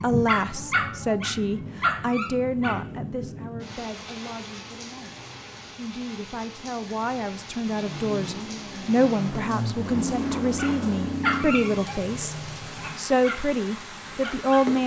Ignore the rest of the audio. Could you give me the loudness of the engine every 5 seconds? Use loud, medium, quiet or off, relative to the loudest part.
off, loud, loud.